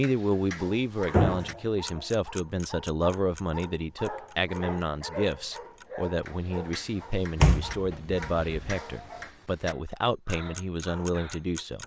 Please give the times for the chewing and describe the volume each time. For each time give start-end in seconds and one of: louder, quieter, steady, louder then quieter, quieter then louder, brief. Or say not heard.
not heard.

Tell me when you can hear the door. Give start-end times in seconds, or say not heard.
1.1-1.6, 7.4-8.8.